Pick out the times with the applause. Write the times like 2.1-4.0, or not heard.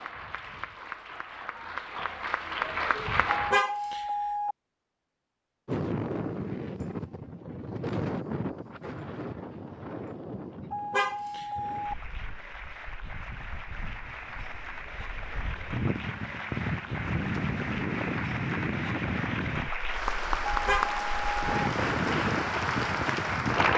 0.0-3.6, 11.6-23.7.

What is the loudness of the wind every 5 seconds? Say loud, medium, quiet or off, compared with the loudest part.
off, loud, quiet, loud, loud.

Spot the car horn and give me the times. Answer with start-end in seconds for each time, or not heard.
3.3-4.5, 10.7-11.9, 20.4-21.5.